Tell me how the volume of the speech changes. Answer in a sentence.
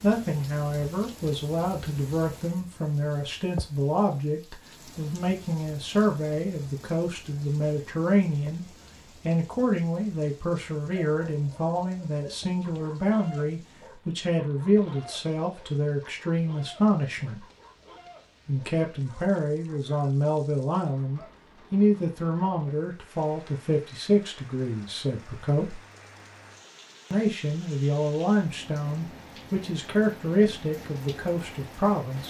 The loudness of the speech stays about the same.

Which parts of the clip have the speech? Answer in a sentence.
You can hear the speech from 0.0 to 17.4 s, from 18.4 to 25.8 s and from 27.1 to 32.2 s.